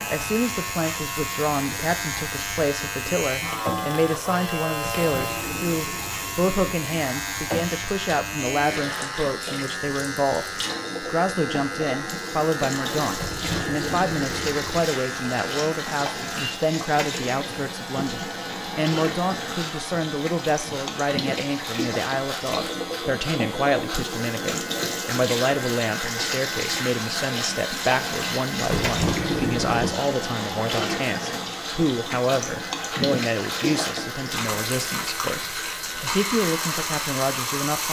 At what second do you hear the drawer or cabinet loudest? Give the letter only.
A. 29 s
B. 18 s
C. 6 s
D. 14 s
A.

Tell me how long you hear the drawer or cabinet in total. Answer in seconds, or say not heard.
5 s.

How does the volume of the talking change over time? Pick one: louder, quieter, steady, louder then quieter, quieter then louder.
steady.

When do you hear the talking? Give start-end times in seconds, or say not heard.
0.1-37.8.